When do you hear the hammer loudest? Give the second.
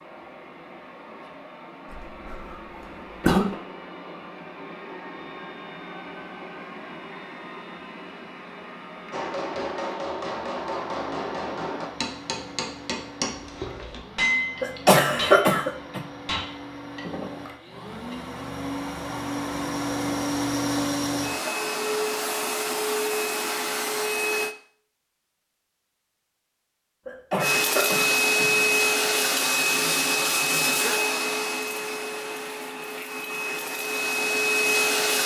14 s.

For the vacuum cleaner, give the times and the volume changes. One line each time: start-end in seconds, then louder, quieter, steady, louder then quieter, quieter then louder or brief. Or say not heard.
0.0-24.6 louder
27.4-35.2 quieter then louder.